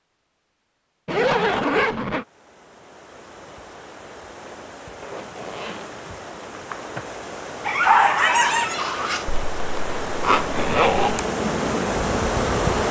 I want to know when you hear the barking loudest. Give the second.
8 s.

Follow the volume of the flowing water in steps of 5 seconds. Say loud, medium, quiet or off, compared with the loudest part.
quiet, medium, loud.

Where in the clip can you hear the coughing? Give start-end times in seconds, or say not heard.
not heard.